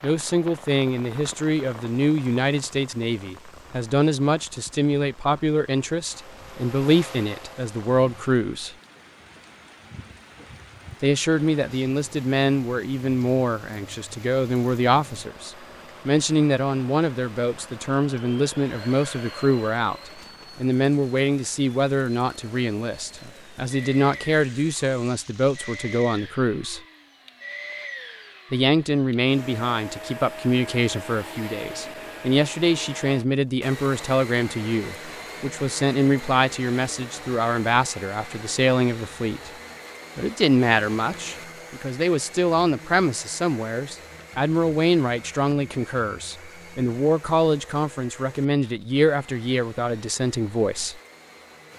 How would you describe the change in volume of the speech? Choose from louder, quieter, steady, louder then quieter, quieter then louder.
steady.